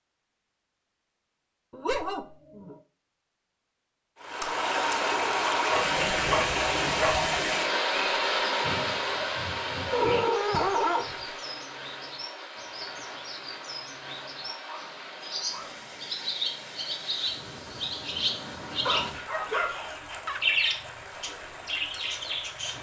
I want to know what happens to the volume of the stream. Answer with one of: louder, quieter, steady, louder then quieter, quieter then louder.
quieter.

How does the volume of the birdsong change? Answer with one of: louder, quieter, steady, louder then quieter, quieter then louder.
louder.